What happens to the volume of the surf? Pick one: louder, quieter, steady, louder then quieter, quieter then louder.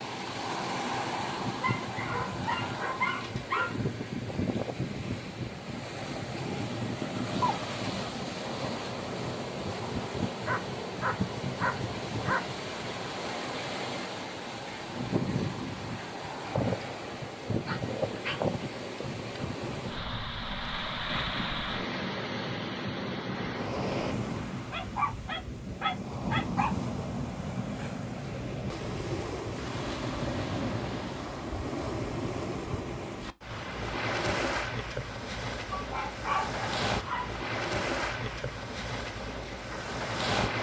steady.